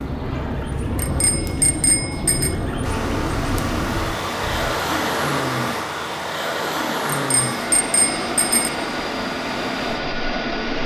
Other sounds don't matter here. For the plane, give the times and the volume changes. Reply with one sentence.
The plane can be heard from 0.0 to 10.8 s, at a steady volume.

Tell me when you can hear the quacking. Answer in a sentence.
You can hear the quacking from 0.0 to 4.8 s.